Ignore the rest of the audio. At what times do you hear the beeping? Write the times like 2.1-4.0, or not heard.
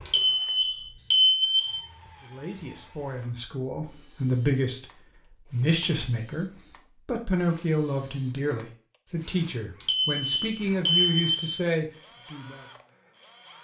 0.1-1.8, 9.8-11.3.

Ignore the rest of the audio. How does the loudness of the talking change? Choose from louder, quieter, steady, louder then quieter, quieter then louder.
steady.